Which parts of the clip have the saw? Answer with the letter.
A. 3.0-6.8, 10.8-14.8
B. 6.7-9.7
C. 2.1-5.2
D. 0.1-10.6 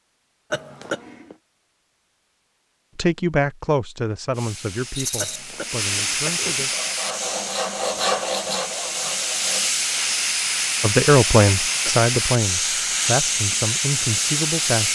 B.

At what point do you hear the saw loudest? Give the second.
8 s.